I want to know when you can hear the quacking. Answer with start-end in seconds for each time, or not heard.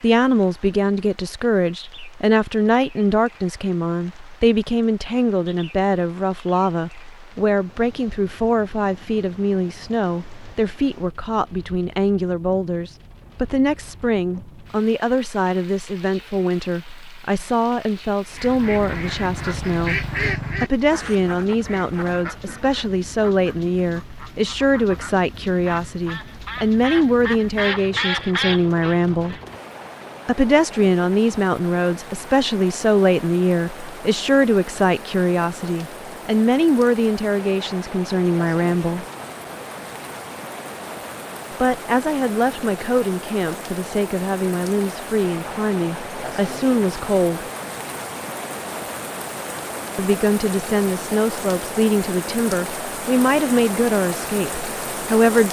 18.4-29.4.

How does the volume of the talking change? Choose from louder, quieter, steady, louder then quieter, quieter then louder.
steady.